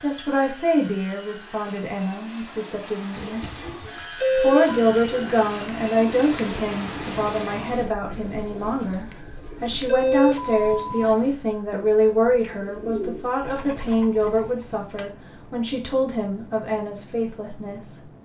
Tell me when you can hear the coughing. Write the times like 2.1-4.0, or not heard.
not heard.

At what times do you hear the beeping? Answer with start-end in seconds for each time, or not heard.
4.2-4.8, 9.8-11.2.